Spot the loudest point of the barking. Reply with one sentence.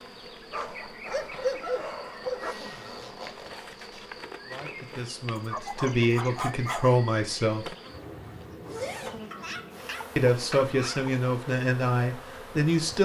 The loudest moment of the barking is at 2 seconds.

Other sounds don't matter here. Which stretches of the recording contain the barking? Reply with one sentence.
You can hear the barking from 0.5 to 2.5 s, from 5.3 to 7.0 s and from 9.3 to 11.2 s.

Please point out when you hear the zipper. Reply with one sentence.
You can hear the zipper from 2.4 to 4.2 s and from 8.6 to 9.2 s.